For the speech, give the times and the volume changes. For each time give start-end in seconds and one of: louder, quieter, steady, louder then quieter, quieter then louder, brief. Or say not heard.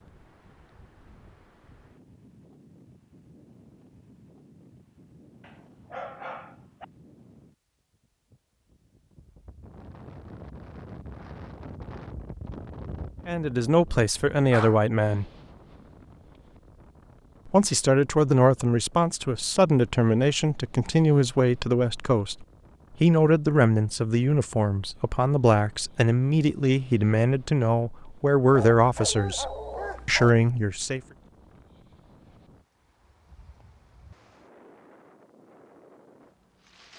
13.2-15.2 brief
17.4-31.0 steady.